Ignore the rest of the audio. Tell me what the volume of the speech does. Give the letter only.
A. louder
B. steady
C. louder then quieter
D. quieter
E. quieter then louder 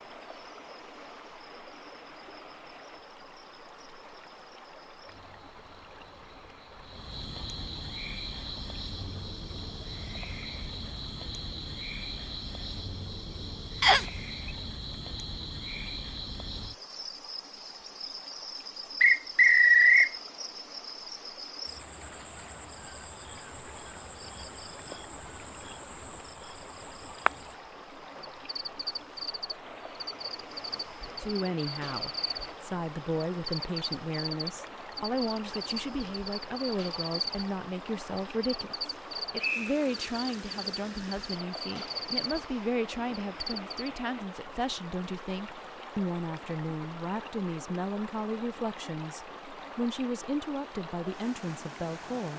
B.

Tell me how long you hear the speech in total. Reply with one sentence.
You can hear the speech for 21 seconds altogether.